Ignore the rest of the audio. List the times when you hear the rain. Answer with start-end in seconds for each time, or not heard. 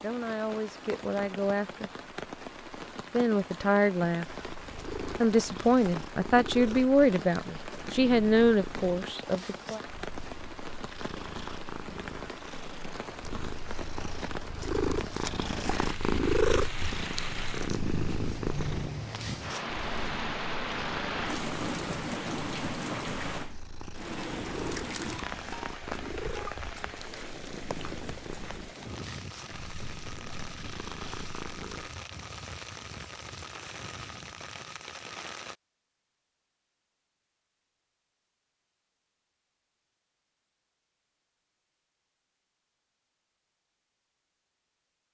0.0-35.5.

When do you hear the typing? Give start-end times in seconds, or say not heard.
not heard.